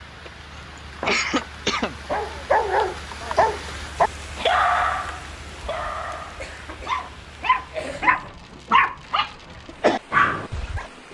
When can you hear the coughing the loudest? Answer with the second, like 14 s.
1 s.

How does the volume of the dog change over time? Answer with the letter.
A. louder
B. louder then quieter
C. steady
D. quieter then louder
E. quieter
D.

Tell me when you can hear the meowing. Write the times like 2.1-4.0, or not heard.
not heard.